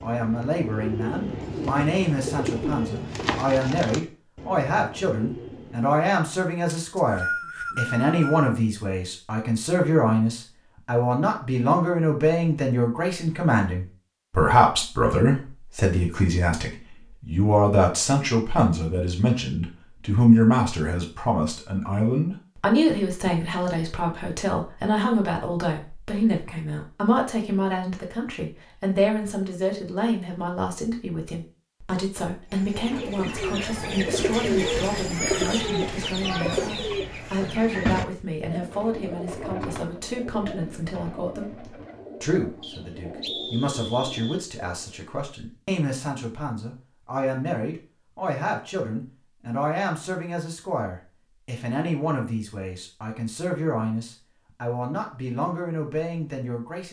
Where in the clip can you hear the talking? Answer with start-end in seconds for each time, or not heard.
0.0-56.8.